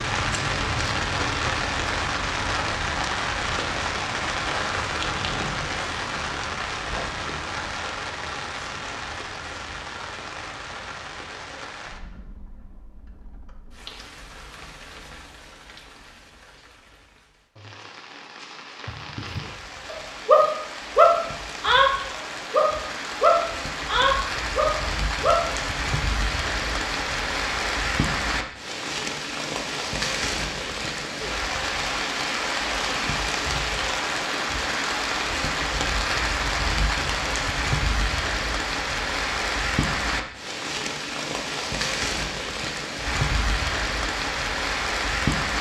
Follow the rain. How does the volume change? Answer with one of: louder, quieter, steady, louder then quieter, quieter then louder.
quieter then louder.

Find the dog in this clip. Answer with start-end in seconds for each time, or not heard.
18.9-21.9, 22.5-25.4.